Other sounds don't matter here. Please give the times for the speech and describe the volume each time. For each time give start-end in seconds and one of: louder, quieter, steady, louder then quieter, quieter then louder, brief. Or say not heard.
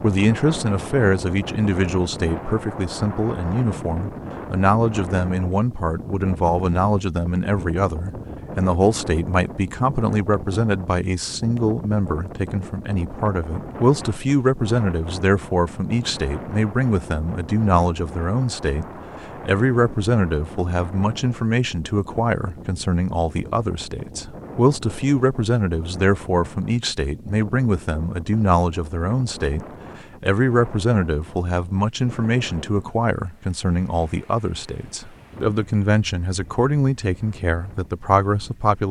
0.0-18.9 steady
19.4-38.8 steady.